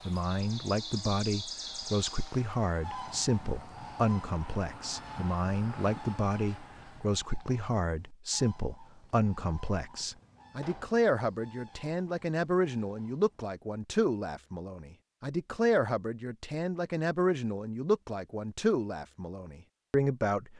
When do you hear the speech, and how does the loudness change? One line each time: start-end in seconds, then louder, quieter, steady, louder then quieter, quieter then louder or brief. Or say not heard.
0.1-20.5 steady.